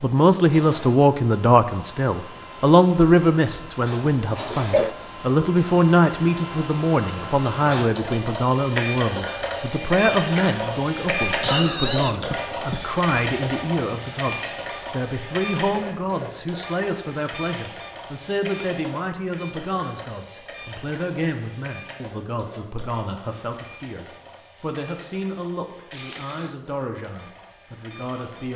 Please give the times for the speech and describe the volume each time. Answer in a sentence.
The speech can be heard from 0.0 to 28.5 s, getting quieter.